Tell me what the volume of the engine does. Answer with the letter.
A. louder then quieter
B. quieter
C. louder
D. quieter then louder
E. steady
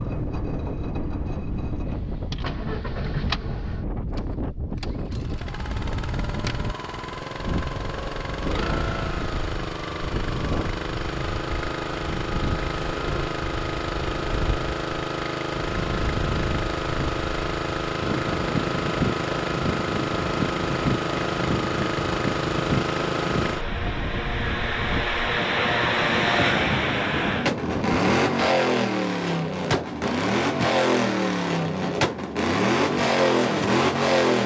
C.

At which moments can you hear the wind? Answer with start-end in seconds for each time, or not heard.
0.0-28.1.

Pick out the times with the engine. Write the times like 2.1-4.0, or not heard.
0.0-34.4.